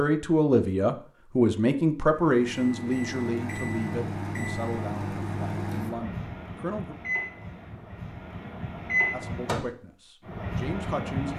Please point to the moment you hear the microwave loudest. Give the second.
9 s.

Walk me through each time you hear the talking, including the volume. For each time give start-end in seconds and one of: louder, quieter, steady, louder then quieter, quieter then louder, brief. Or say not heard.
0.0-7.0 quieter
9.1-11.3 brief.